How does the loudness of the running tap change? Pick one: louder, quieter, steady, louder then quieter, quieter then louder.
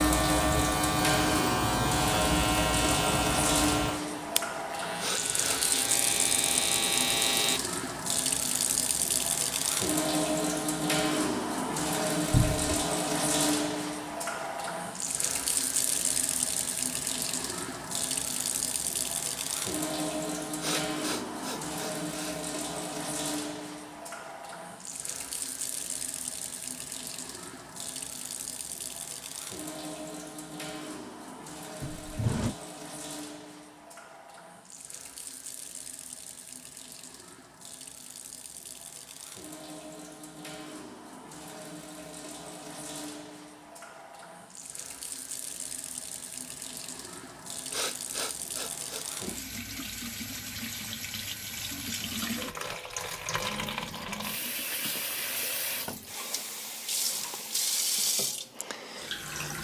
quieter then louder.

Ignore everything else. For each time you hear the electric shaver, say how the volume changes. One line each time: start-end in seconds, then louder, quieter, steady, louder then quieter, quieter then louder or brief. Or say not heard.
0.0-7.6 quieter then louder.